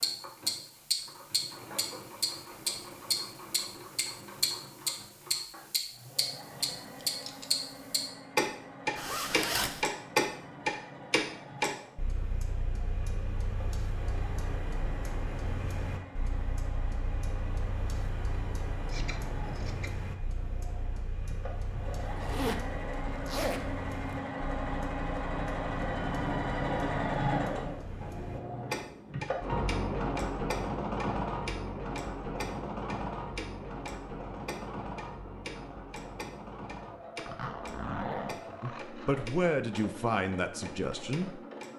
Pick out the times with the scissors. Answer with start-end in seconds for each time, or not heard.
6.6-7.5, 18.9-20.1, 38.3-39.2.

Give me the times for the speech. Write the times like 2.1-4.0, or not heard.
38.6-41.4.